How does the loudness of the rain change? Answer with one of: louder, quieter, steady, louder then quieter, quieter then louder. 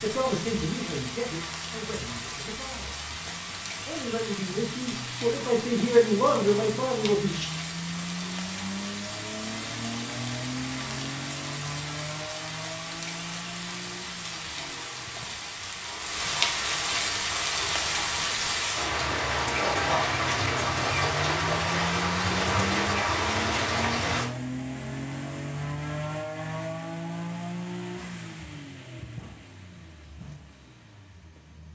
louder.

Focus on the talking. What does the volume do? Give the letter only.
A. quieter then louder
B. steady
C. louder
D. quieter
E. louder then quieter
A.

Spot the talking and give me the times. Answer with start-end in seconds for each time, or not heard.
0.0-7.5.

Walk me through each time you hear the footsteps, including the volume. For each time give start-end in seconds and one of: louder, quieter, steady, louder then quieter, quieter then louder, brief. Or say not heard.
not heard.